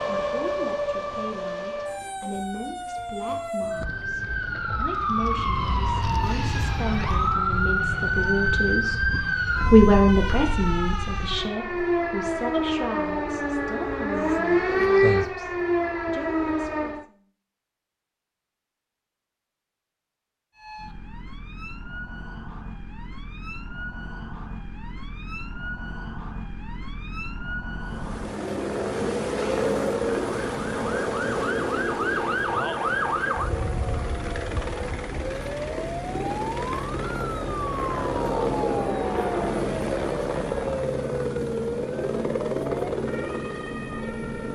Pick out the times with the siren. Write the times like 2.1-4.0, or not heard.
0.0-17.1, 20.6-44.4.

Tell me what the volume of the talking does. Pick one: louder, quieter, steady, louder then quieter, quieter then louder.
louder then quieter.